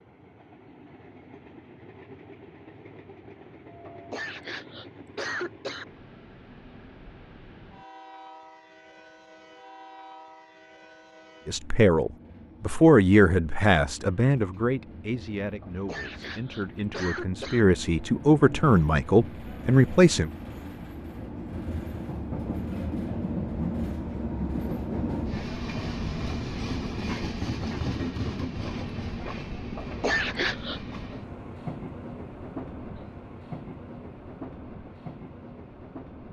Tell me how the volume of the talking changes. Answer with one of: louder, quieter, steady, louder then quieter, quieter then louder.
quieter then louder.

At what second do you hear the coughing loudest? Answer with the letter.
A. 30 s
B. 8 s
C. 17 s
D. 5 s
A.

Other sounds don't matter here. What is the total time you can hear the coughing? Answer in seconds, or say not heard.
5 s.